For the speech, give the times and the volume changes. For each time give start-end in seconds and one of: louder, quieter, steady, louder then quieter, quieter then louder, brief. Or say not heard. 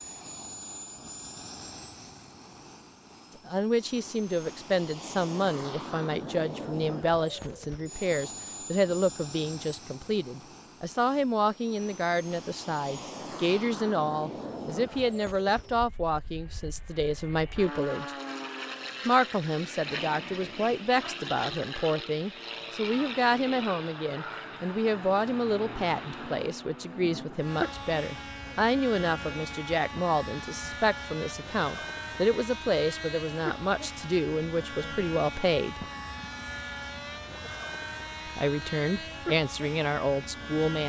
3.5-18.1 steady
19.1-35.9 steady
38.2-40.8 brief.